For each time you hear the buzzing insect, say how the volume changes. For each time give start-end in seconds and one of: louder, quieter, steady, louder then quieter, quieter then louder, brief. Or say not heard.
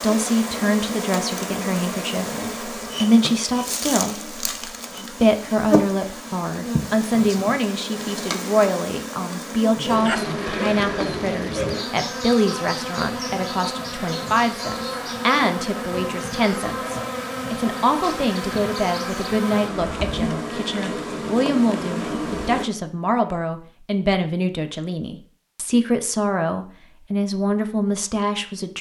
0.0-22.6 steady.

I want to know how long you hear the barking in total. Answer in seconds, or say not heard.
2 s.